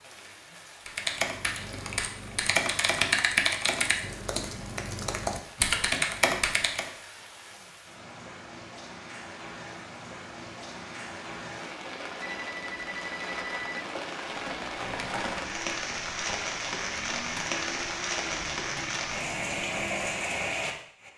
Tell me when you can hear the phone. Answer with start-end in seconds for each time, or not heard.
12.2-13.8.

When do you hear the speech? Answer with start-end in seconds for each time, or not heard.
not heard.